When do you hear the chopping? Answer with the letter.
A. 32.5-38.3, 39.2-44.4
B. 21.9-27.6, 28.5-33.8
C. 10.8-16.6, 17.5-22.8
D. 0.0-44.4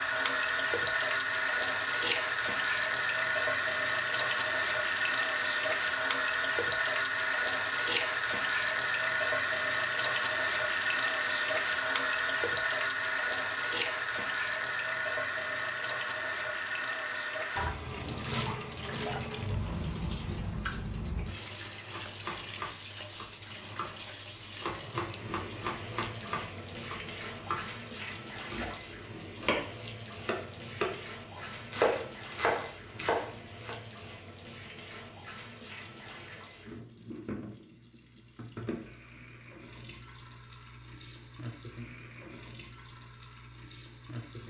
B.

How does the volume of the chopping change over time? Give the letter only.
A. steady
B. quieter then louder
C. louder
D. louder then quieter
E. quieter
C.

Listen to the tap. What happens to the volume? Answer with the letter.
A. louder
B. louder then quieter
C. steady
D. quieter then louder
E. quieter
E.